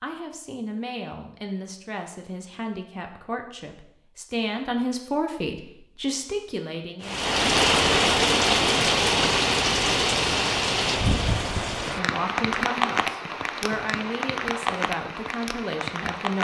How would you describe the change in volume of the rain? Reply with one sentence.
The volume of the rain goes down.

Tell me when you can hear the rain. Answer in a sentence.
The rain can be heard from 7.0 to 16.3 s.